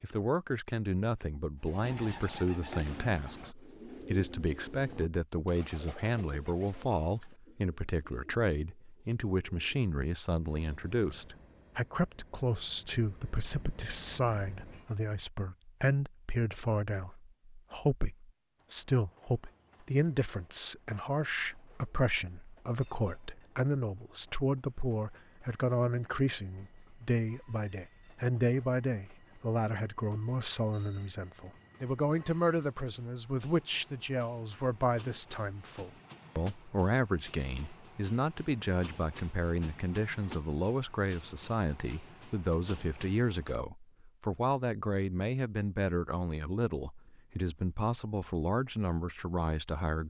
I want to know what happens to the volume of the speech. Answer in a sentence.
The volume of the speech stays about the same.